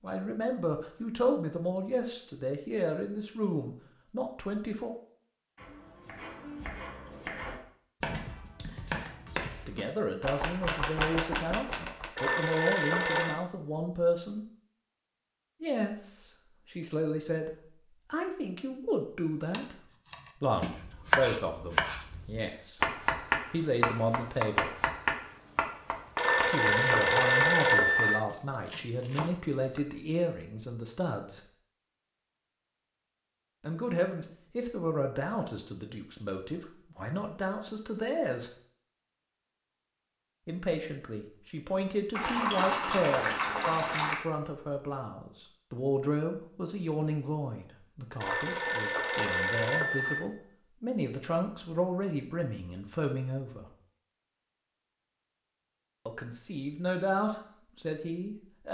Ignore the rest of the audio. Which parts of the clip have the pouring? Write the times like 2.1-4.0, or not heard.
42.1-44.1.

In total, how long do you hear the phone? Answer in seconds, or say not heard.
5 s.